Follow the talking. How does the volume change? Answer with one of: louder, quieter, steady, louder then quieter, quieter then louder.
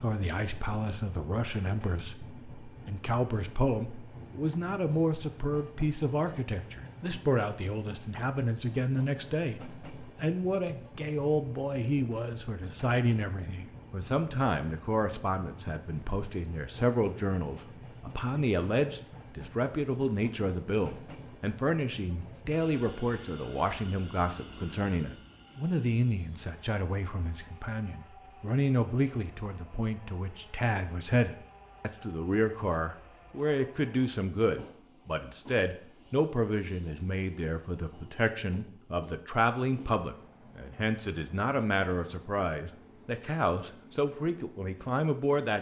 steady.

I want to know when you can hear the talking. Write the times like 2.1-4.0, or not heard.
0.0-45.5.